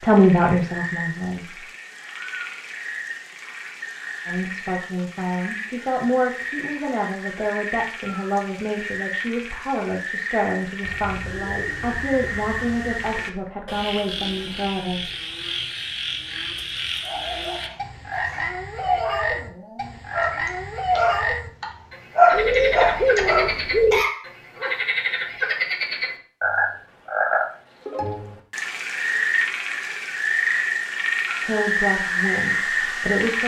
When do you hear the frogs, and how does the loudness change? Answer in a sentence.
The frogs can be heard from 0.0 to 33.4 s, getting louder.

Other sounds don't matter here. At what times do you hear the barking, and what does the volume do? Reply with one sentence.
You can hear the barking from 17.0 to 24.7 s, getting louder then quieter.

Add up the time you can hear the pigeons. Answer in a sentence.
The pigeons can be heard for 4 seconds in total.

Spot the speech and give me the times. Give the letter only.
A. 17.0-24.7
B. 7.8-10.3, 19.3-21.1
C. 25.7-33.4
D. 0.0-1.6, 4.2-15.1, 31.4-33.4
D.